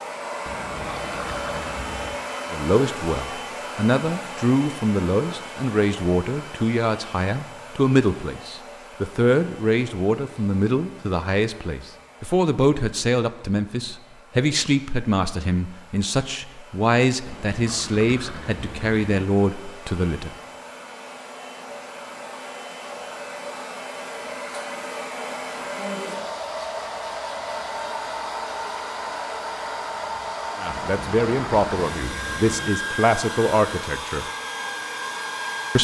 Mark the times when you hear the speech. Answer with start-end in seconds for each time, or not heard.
2.5-20.4, 30.6-34.2.